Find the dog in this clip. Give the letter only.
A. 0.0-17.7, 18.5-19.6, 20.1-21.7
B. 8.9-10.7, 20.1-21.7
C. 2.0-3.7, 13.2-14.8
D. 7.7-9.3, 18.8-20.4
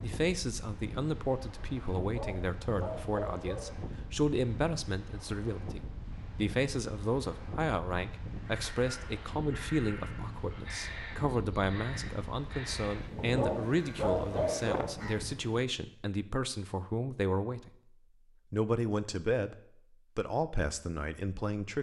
C.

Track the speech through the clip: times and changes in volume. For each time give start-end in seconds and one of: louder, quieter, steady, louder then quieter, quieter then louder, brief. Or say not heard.
0.0-17.7 steady
18.5-19.6 brief
20.1-21.7 brief.